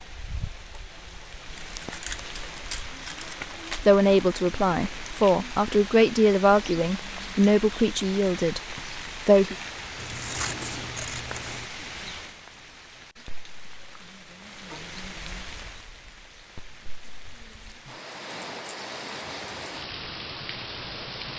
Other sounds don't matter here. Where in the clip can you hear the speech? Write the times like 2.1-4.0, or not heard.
3.8-9.6.